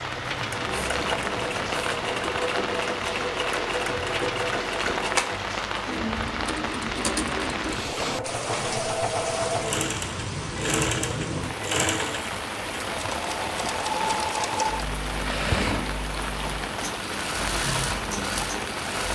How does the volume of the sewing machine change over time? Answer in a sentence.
The volume of the sewing machine stays about the same.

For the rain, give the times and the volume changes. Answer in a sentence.
The rain can be heard from 0.0 to 19.1 s, at a steady volume.